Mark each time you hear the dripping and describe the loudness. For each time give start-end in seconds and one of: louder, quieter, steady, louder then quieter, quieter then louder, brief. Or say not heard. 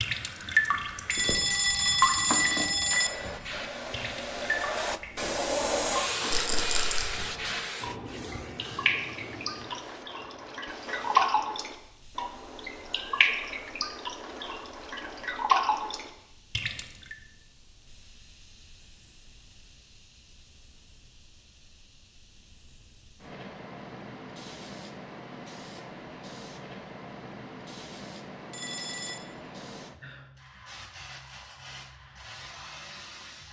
0.0-17.1 quieter then louder.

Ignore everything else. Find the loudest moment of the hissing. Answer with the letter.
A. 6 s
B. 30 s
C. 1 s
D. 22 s
A.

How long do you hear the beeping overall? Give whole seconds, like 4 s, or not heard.
3 s.